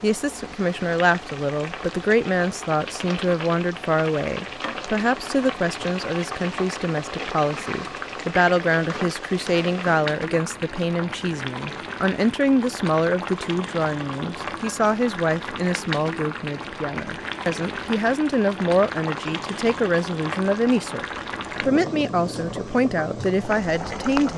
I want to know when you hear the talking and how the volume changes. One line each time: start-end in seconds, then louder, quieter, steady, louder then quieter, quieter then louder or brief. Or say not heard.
0.0-24.3 steady.